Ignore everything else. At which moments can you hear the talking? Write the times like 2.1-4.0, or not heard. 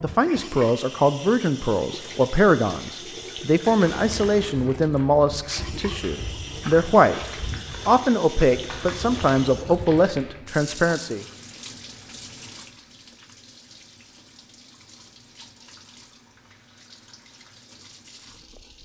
0.0-7.2, 7.8-11.2.